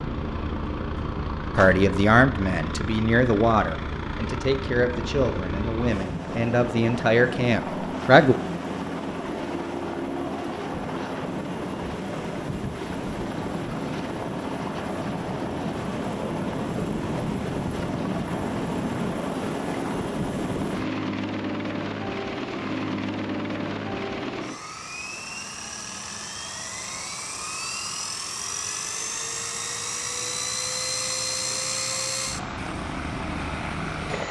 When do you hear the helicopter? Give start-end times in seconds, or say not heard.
0.0-34.2.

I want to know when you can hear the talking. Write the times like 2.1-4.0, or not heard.
1.6-8.3.